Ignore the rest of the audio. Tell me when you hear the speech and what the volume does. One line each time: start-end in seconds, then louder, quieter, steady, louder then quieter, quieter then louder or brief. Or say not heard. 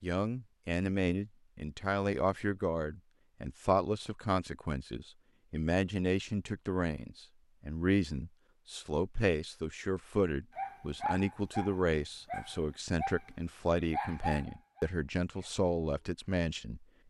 0.0-16.9 steady.